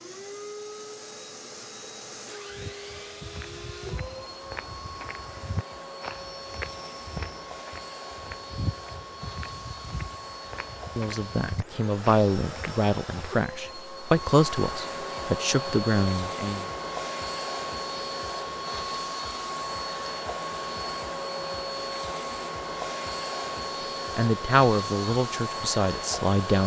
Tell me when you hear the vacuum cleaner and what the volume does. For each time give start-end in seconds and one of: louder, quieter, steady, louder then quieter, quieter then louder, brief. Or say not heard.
0.0-26.6 louder.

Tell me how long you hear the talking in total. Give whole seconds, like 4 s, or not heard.
8 s.